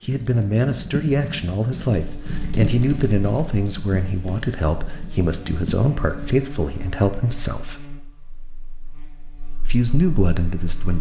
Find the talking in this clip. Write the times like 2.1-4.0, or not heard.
0.0-7.8, 9.7-10.9.